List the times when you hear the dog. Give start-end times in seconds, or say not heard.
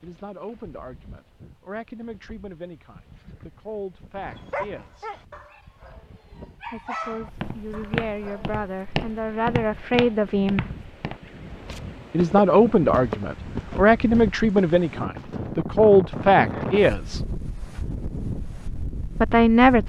4.2-8.6.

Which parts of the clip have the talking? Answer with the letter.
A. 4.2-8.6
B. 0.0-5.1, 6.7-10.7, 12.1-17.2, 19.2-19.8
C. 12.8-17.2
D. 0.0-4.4
B.